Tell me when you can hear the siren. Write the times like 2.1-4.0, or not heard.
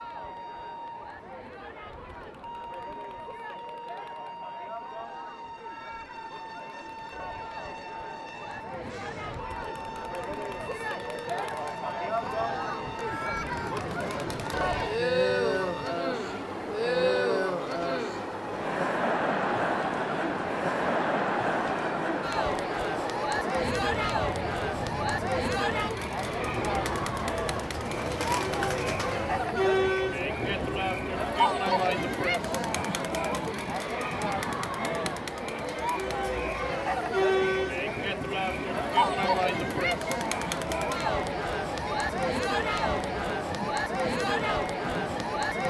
not heard.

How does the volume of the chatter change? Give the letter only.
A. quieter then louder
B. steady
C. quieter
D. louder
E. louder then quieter
D.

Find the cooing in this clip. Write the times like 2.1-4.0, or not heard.
26.8-29.3.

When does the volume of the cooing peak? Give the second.
28 s.